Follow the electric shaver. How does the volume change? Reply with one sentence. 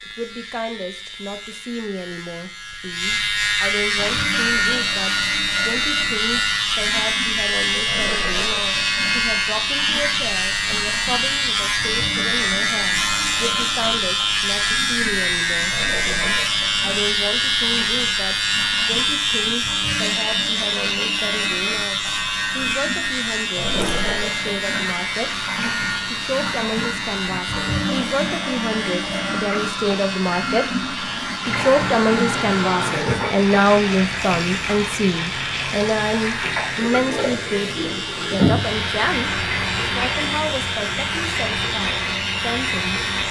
The loudness of the electric shaver goes down.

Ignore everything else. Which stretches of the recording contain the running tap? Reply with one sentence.
The running tap can be heard from 4.0 to 43.2 s.